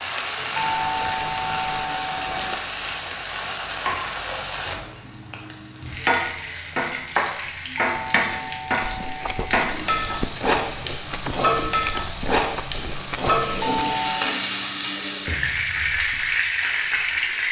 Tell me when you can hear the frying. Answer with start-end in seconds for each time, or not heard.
0.0-17.4.